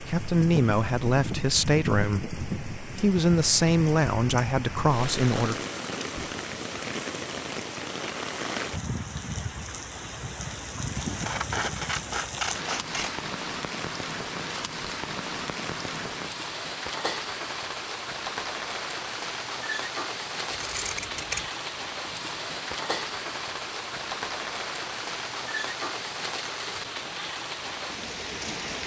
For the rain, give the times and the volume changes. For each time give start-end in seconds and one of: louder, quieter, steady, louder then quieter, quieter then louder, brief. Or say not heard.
0.0-28.8 steady.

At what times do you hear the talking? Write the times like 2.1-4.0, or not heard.
0.0-5.7.